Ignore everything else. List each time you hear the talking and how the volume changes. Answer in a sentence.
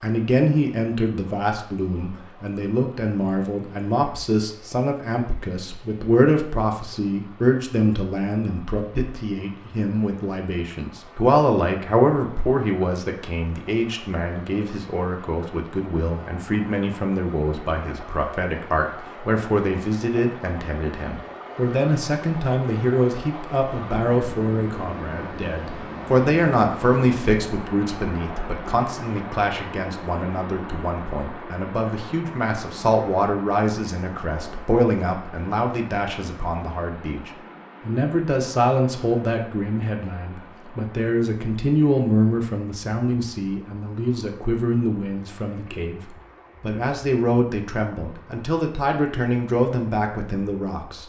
The talking can be heard from 0.0 to 51.0 s, at a steady volume.